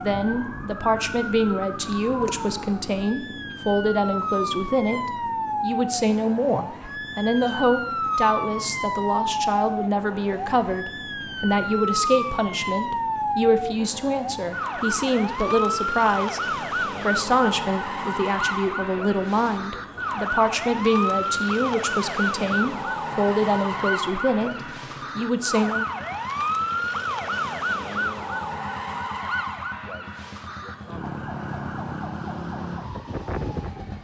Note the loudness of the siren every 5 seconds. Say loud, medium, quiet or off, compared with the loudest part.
medium, loud, loud, loud, loud, loud, medium.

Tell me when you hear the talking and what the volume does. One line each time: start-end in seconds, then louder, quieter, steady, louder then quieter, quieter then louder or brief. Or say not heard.
0.0-24.6 steady
25.1-25.9 brief.